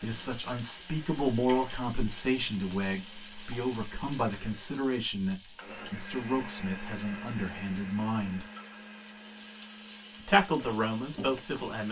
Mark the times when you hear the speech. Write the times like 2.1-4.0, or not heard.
0.0-8.4, 10.2-11.8.